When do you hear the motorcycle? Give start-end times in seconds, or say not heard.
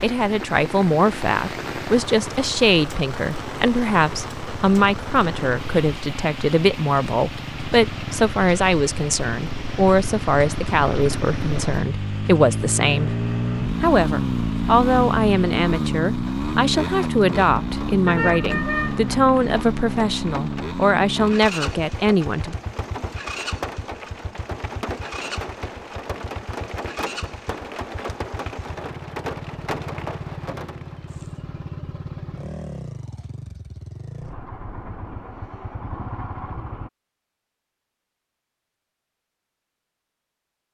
0.0-36.9.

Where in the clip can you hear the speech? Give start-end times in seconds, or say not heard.
0.0-13.2, 13.8-22.6.